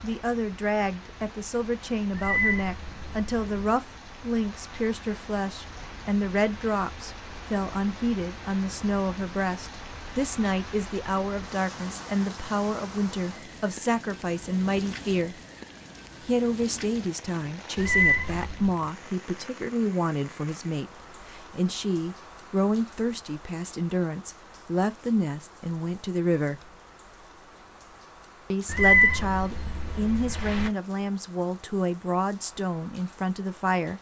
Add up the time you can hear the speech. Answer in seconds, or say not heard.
31 s.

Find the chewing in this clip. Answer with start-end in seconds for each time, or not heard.
not heard.